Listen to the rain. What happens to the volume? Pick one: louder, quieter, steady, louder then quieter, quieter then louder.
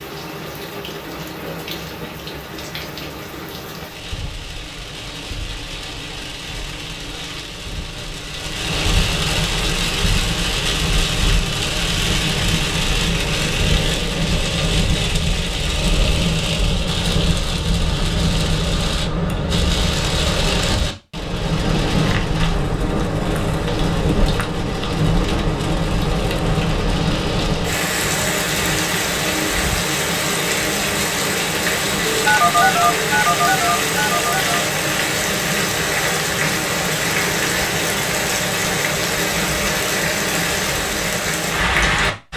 louder.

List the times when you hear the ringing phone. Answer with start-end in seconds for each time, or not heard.
32.2-34.5.